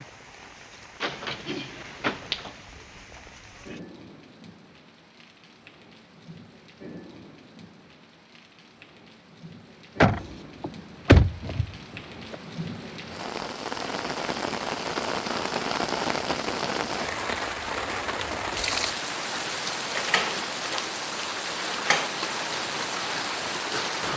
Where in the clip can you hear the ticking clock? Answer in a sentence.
The ticking clock can't be heard in this clip.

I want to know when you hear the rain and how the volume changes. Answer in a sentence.
The rain can be heard from 0.0 to 24.1 s, getting louder.